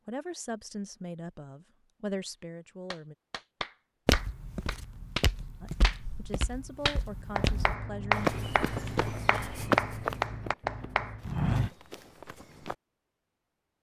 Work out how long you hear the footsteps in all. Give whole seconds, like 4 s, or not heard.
9 s.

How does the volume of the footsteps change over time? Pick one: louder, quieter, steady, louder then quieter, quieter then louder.
louder.